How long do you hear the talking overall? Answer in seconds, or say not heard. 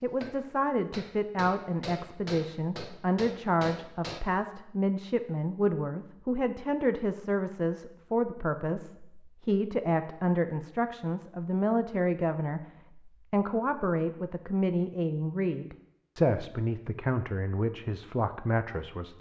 19 s.